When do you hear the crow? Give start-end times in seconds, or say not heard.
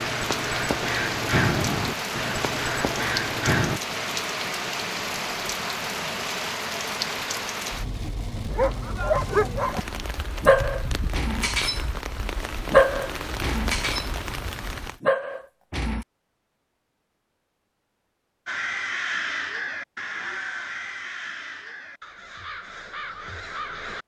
0.0-3.8, 18.4-24.0.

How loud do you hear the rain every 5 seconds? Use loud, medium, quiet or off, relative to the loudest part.
loud, loud, medium, off, off.